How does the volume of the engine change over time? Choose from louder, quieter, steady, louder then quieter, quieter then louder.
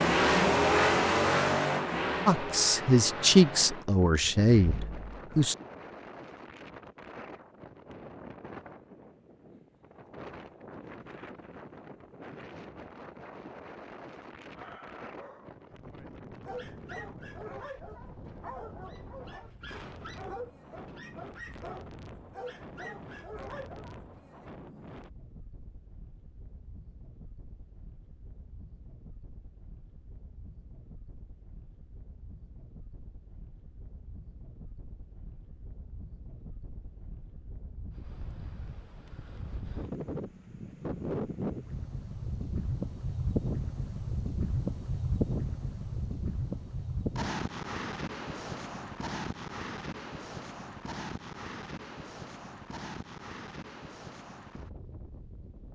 quieter.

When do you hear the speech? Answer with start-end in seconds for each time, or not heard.
2.2-5.5.